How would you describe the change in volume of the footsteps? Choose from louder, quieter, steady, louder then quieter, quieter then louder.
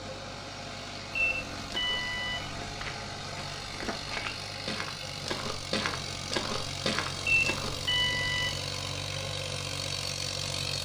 louder.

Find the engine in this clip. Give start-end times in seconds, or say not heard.
0.0-10.8.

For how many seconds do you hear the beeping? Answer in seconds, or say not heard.
3 s.